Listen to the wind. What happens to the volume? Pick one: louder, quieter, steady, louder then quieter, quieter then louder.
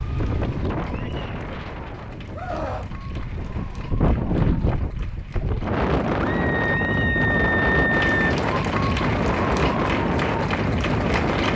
louder.